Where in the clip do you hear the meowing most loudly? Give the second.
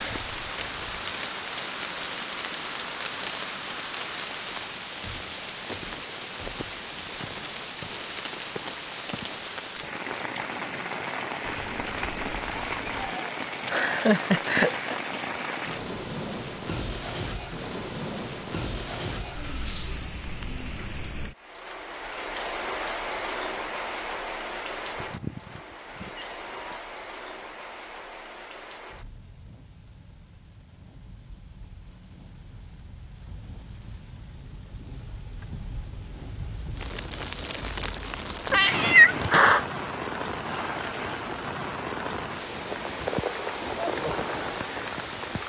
39 s.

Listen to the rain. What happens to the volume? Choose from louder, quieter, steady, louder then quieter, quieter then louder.
quieter then louder.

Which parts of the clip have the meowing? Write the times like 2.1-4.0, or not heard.
11.4-13.2, 24.9-26.8, 38.5-39.6.